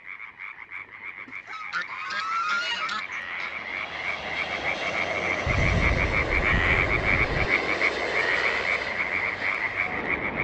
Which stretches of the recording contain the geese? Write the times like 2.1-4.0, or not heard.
1.2-3.5, 5.5-7.5.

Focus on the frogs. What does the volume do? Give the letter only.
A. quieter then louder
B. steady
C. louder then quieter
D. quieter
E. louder
E.